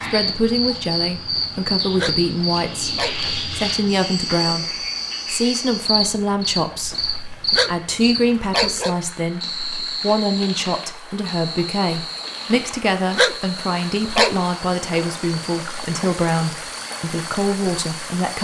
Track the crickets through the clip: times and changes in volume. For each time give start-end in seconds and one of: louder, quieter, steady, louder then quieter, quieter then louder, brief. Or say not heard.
0.0-18.3 quieter.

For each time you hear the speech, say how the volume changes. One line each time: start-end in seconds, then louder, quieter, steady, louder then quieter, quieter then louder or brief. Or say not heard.
0.0-18.3 steady.